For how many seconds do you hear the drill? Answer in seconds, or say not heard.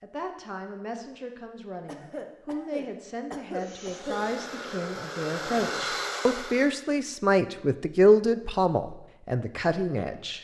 3 s.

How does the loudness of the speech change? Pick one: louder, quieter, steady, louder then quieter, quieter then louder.
louder.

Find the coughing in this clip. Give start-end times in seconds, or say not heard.
1.9-4.3.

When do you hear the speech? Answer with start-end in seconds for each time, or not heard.
0.0-10.3.